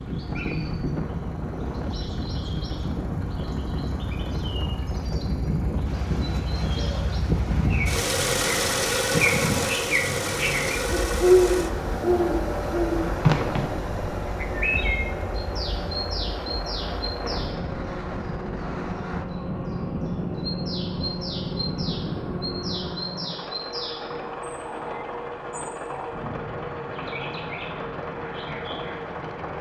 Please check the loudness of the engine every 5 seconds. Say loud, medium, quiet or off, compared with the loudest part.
medium, loud, loud, medium, medium, medium.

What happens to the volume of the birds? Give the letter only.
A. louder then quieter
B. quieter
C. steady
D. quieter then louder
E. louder
A.